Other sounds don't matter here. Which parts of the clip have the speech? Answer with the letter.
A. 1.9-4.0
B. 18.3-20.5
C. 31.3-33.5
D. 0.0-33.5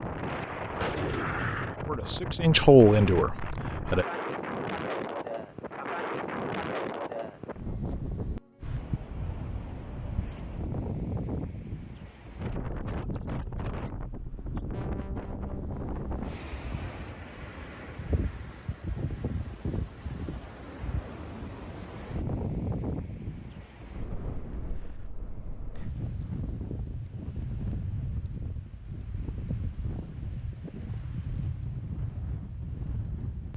A.